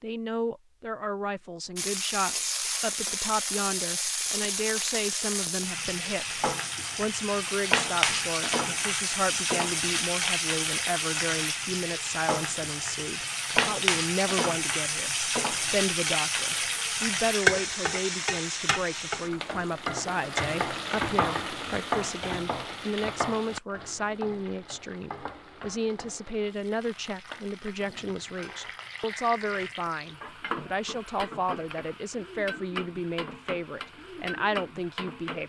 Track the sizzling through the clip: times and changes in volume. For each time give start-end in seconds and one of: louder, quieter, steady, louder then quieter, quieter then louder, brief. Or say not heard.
1.8-35.4 quieter.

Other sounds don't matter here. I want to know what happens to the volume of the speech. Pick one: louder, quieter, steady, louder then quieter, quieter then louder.
steady.